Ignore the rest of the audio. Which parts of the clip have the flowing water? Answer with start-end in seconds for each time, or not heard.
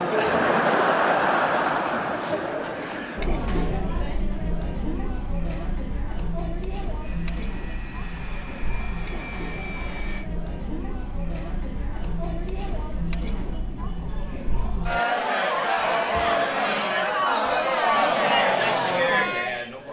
not heard.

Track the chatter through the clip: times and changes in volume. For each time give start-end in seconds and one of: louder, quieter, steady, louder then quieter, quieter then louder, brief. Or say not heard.
0.0-19.8 quieter then louder.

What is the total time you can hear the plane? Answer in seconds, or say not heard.
3 s.